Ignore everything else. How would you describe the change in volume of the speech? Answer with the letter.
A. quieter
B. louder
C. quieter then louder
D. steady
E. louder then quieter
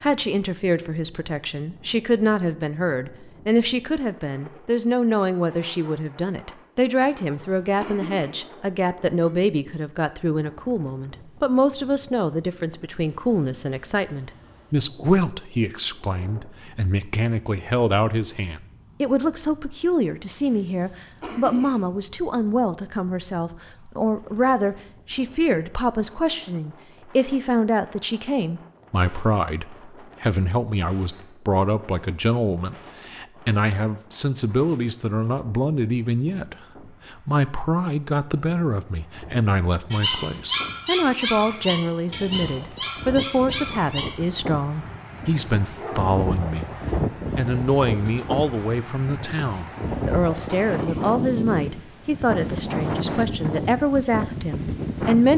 D.